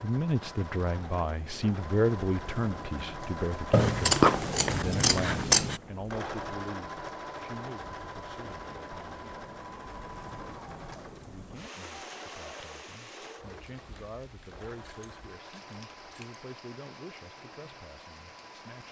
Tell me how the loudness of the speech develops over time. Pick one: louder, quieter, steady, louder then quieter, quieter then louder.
quieter.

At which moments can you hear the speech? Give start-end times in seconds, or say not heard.
0.0-9.2, 11.2-18.8.